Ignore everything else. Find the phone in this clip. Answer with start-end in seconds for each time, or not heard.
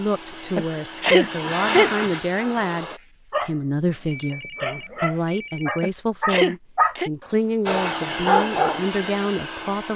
3.9-5.9.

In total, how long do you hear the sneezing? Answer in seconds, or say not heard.
3 s.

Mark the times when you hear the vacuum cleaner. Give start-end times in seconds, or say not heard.
0.0-3.0, 7.7-9.9.